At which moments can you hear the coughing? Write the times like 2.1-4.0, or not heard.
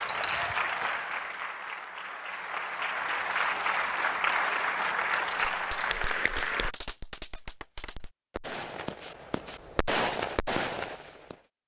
not heard.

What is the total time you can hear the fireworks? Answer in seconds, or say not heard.
6 s.